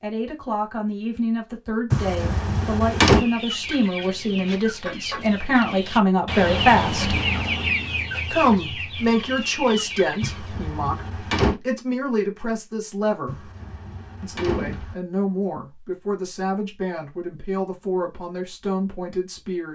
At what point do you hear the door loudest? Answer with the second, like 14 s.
3 s.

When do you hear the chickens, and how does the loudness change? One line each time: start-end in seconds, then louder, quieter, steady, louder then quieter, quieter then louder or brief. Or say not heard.
3.0-10.6 louder then quieter.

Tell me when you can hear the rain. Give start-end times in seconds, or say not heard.
not heard.